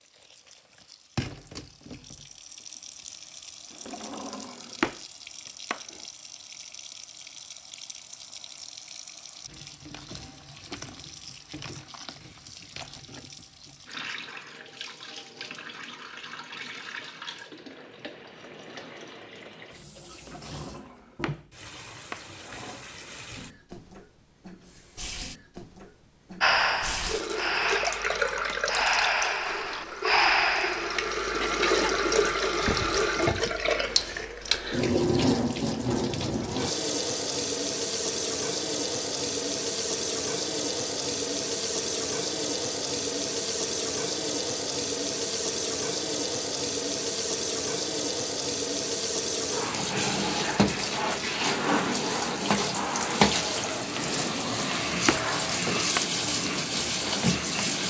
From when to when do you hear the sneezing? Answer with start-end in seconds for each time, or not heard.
not heard.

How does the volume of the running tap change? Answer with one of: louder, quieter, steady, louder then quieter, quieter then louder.
louder.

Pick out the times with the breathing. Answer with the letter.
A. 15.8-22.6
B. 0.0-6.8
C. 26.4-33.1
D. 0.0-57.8
C.